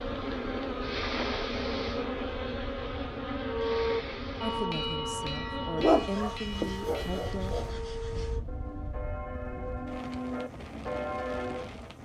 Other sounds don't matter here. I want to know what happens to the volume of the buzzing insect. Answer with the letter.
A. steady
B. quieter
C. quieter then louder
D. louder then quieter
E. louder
B.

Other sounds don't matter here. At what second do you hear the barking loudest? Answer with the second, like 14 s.
6 s.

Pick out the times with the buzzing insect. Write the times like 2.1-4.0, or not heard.
0.0-8.4.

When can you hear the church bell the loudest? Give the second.
4 s.